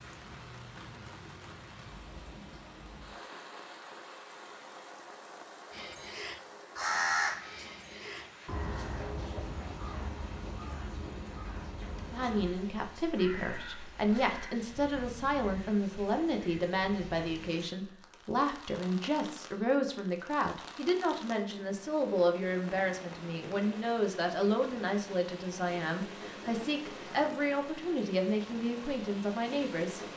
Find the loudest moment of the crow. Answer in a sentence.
The volume of the crow peaks at 7 seconds.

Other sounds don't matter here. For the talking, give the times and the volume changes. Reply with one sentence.
You can hear the talking from 12.1 to 30.0 s, at a steady volume.